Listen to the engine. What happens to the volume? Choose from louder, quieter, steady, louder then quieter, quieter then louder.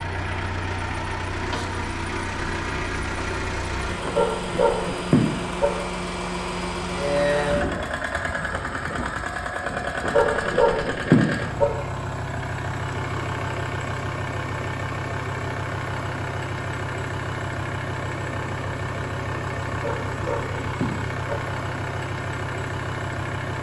steady.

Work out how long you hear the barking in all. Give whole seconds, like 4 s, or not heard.
5 s.